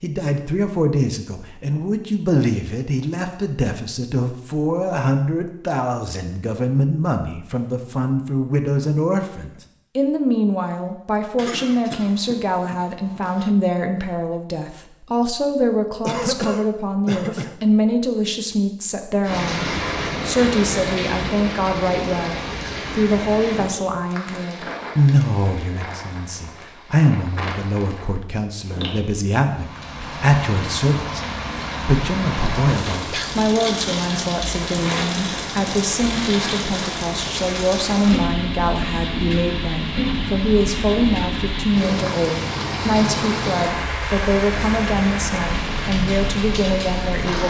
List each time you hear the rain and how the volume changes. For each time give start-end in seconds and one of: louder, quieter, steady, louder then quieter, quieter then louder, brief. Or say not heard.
19.2-47.4 quieter then louder.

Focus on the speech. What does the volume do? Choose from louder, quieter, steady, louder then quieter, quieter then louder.
steady.